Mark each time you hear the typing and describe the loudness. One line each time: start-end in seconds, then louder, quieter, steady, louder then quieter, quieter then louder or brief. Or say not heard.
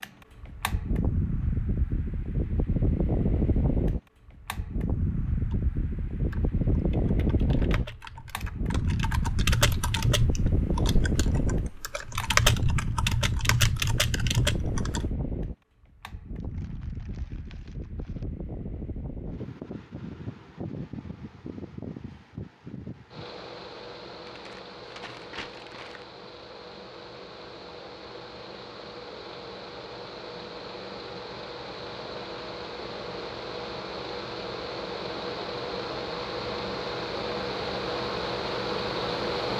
5.5-15.1 louder.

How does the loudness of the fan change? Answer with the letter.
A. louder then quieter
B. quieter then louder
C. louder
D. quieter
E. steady
B.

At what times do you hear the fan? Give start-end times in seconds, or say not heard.
0.0-39.5.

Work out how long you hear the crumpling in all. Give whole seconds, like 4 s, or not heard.
4 s.